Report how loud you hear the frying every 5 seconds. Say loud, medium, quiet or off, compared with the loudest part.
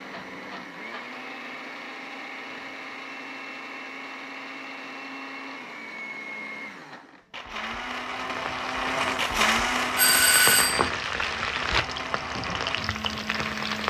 off, medium, loud.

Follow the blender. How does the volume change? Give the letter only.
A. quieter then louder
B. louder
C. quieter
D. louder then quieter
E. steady
D.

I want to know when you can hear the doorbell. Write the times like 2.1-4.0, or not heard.
9.9-10.9.